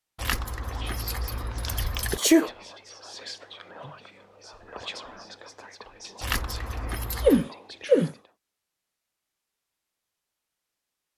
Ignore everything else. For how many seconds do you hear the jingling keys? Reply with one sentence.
The jingling keys can be heard for 3 seconds in total.